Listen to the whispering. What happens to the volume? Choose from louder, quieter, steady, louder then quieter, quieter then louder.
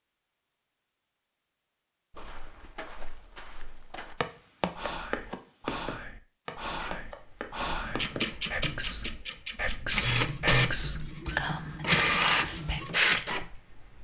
louder.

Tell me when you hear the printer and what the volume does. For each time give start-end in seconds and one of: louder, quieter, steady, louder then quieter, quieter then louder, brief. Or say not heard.
6.8-13.9 louder.